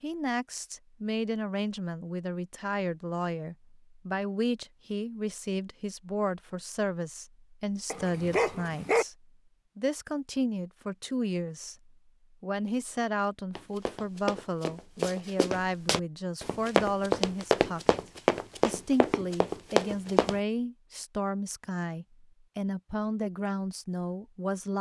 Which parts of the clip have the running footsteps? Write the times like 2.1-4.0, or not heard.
13.6-20.4.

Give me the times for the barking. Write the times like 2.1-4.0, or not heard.
7.9-9.1.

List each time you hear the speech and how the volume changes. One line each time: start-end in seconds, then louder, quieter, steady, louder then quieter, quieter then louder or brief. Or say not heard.
0.0-17.9 steady
18.6-24.7 steady.